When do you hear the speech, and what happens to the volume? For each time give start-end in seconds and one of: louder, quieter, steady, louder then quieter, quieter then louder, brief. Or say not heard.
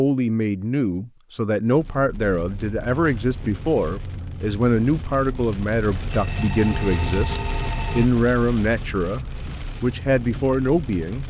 0.0-11.2 steady.